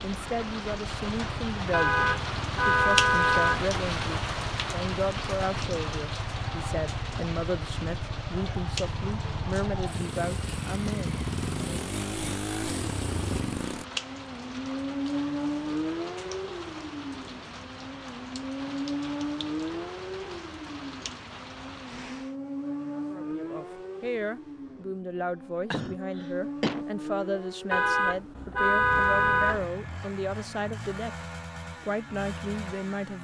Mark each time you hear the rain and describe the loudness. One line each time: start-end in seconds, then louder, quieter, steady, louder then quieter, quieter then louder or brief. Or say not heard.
0.0-22.4 quieter.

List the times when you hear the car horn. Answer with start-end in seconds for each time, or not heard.
1.7-3.7, 27.7-29.6.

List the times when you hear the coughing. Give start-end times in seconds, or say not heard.
25.7-26.9.